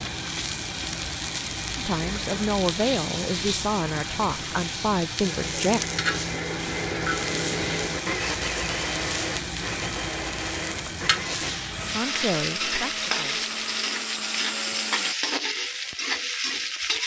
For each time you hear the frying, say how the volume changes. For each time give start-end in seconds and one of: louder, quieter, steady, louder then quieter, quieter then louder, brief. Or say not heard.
0.0-17.0 steady.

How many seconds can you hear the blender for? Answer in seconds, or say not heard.
10 s.